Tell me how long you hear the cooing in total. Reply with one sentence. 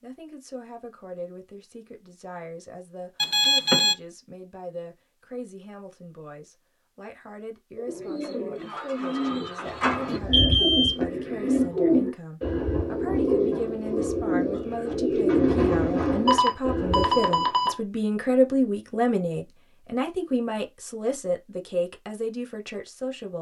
The cooing can be heard for 10 seconds in total.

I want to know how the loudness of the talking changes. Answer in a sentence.
The loudness of the talking goes up.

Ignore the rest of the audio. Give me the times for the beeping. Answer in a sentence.
The beeping can be heard from 3.2 to 4.0 s, from 10.1 to 10.9 s and from 16.2 to 17.8 s.